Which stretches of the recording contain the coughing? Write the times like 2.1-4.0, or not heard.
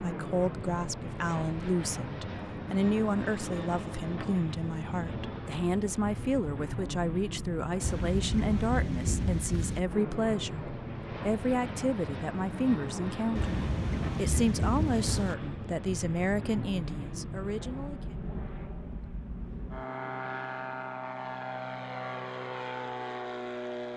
not heard.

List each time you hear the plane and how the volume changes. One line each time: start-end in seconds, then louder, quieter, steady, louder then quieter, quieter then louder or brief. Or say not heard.
0.0-23.9 steady.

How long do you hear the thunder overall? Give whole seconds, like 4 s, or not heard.
4 s.